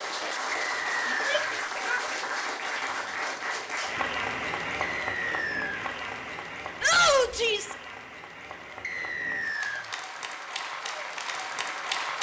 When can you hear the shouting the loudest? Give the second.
7 s.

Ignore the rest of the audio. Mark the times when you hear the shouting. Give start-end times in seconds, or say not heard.
1.1-2.0, 6.8-7.8.